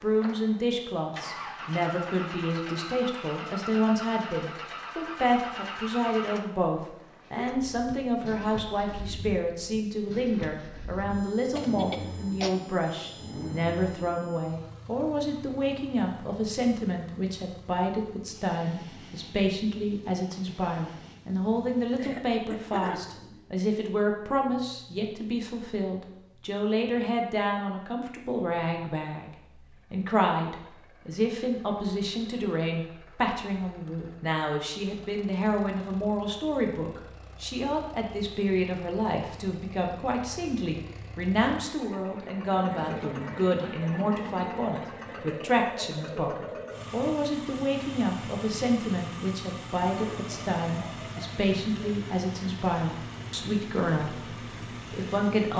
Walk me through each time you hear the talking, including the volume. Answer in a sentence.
The talking can be heard from 0.0 to 55.5 s, at a steady volume.